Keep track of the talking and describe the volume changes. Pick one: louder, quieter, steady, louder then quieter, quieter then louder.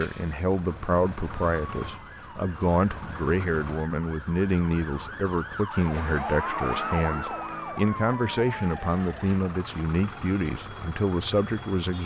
steady.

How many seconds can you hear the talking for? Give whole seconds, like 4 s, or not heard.
12 s.